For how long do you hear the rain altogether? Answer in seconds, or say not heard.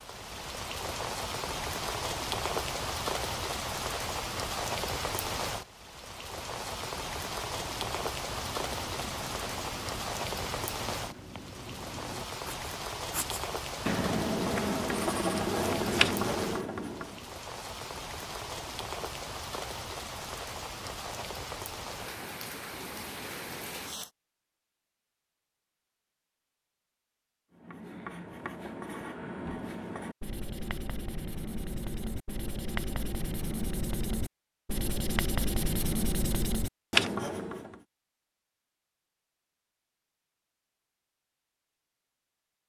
24 s.